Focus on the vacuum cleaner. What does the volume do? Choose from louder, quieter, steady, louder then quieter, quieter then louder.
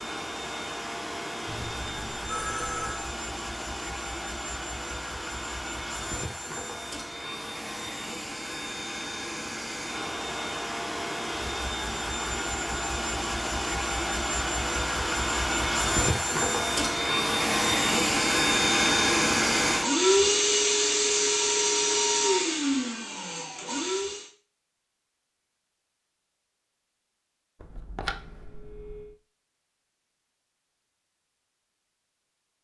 louder.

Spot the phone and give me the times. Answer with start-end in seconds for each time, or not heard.
1.4-3.1, 27.6-29.1.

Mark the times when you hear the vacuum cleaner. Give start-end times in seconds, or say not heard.
0.0-24.3.